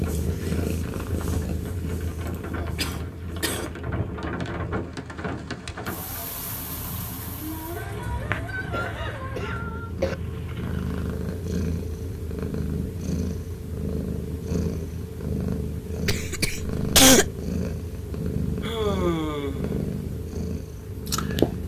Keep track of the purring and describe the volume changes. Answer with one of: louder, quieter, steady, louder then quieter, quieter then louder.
quieter then louder.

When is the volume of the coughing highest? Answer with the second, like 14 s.
17 s.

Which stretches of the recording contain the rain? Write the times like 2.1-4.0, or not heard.
0.0-11.2.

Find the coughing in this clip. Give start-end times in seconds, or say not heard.
2.2-3.7, 8.7-10.2, 16.1-17.2.